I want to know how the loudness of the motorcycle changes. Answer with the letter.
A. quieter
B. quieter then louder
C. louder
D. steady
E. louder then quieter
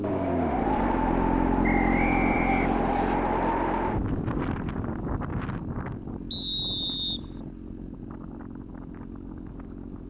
A.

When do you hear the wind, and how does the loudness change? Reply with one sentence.
The wind can be heard from 0.0 to 10.0 s, getting quieter.